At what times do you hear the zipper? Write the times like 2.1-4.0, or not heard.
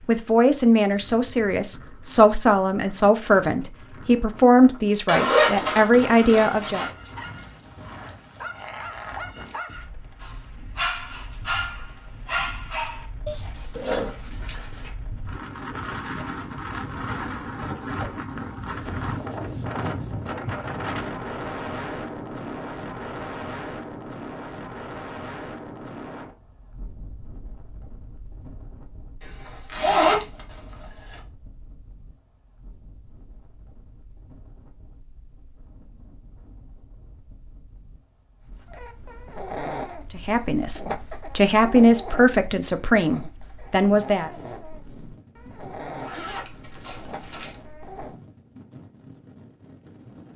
5.0-6.9, 29.2-30.4, 46.0-47.5.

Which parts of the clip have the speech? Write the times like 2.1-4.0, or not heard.
0.1-6.9, 40.1-44.3.